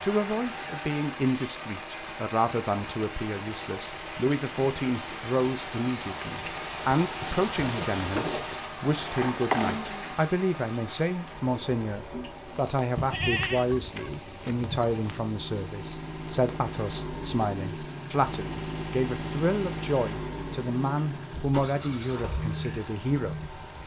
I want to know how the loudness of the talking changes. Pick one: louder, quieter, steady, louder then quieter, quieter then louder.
steady.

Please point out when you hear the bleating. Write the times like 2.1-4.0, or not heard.
8.8-9.9, 12.9-15.1.